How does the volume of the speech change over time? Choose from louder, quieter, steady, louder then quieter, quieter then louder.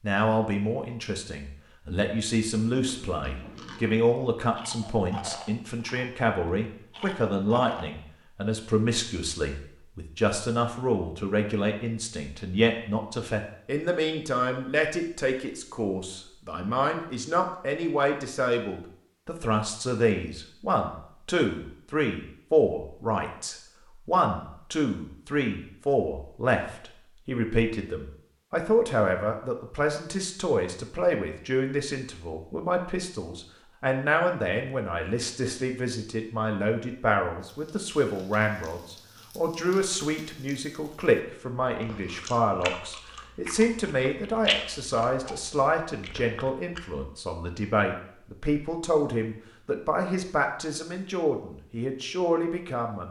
steady.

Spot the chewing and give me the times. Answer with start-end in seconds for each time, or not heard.
2.8-7.9, 41.6-46.9.